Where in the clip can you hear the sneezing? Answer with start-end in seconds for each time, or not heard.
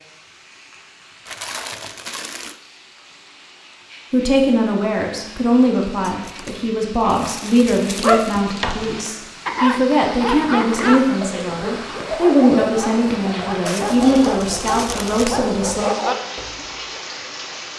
not heard.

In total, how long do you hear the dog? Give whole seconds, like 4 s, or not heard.
9 s.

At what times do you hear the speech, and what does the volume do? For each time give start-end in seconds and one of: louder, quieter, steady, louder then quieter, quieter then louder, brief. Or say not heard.
4.1-15.9 steady.